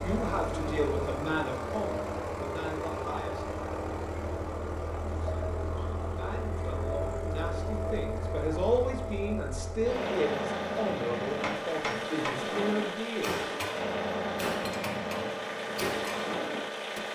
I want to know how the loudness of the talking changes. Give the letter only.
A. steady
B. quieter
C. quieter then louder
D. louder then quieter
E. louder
C.